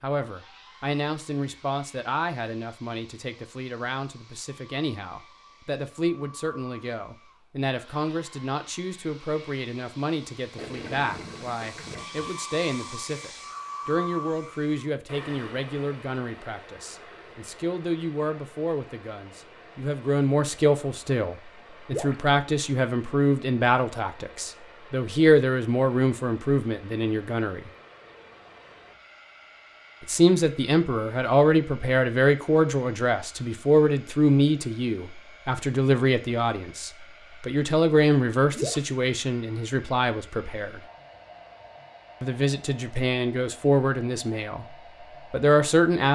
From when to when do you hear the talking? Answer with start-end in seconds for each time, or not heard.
0.0-27.7, 30.0-40.8, 42.2-44.6, 45.3-46.1.